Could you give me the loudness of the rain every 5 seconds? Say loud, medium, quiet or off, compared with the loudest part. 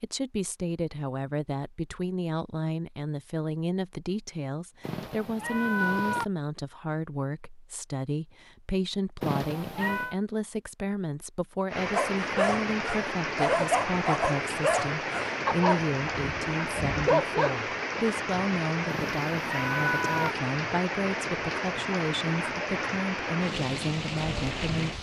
off, off, loud, loud, loud.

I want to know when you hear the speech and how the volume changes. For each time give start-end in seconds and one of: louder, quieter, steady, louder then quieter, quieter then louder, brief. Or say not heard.
0.0-24.9 steady.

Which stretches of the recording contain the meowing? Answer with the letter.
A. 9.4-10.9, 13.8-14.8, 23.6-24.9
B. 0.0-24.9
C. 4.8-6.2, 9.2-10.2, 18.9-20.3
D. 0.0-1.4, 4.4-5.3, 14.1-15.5
C.